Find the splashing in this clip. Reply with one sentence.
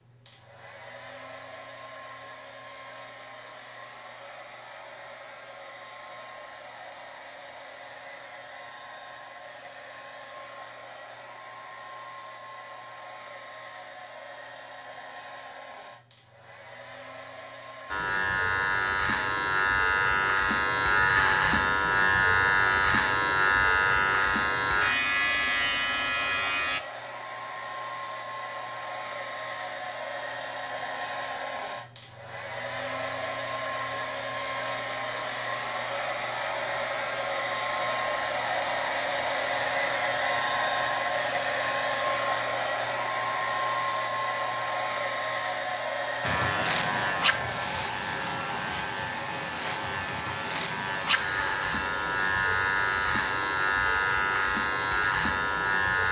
The splashing can't be heard in this clip.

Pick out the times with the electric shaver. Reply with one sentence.
You can hear the electric shaver from 17.9 to 26.8 s and from 46.2 to 56.0 s.